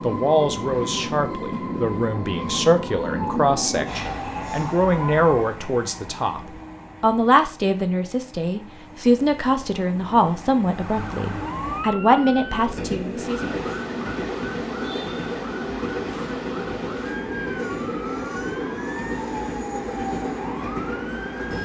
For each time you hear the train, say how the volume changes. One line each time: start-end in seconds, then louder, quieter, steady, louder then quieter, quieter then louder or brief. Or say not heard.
0.0-21.5 quieter then louder.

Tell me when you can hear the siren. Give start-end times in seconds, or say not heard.
2.4-5.3, 10.7-21.5.